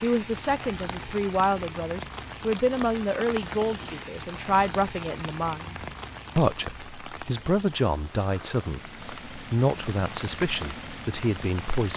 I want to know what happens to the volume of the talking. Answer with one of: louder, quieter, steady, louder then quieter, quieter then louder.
steady.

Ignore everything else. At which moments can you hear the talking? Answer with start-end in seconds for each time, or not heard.
0.0-11.9.